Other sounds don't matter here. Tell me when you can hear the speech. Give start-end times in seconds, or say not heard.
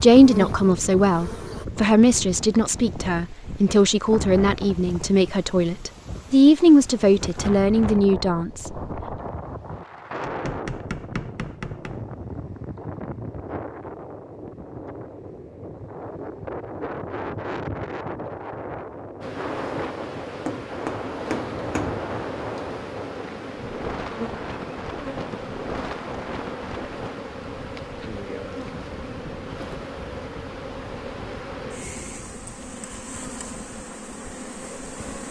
0.0-8.8.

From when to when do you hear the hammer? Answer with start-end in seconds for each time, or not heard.
10.2-12.0, 20.4-22.0.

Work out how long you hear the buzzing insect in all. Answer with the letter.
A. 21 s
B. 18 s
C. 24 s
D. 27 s
B.